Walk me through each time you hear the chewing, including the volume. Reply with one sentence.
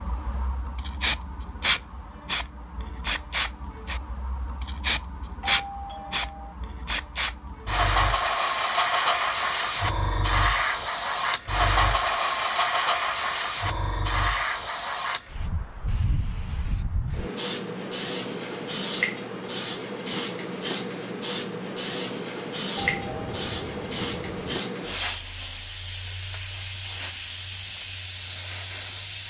The chewing can't be heard in this clip.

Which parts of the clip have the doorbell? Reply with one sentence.
The doorbell can be heard from 5.4 to 6.5 s and from 22.8 to 24.6 s.